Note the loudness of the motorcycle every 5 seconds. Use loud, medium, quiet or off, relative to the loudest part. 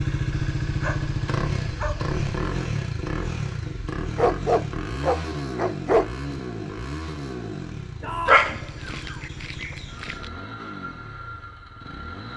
loud, medium, medium.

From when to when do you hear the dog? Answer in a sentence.
The dog can be heard from 0.3 to 2.4 s, from 4.2 to 6.0 s, from 8.2 to 9.0 s and from 9.6 to 10.2 s.